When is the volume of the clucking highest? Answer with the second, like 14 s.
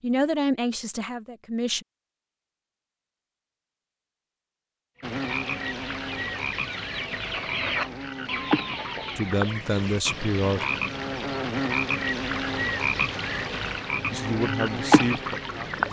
8 s.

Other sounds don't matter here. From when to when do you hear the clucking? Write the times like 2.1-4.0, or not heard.
5.0-10.2.